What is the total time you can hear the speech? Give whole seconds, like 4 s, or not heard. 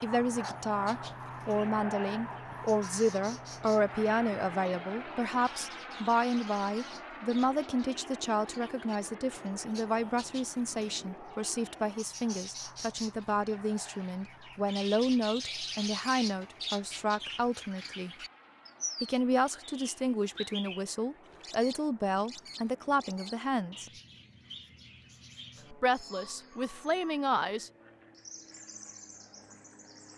25 s.